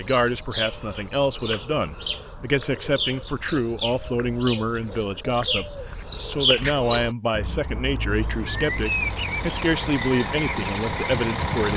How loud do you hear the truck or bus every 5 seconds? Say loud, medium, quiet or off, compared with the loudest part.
off, medium, loud.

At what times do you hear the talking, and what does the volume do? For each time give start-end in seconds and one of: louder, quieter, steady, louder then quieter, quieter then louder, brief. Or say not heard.
0.0-11.7 steady.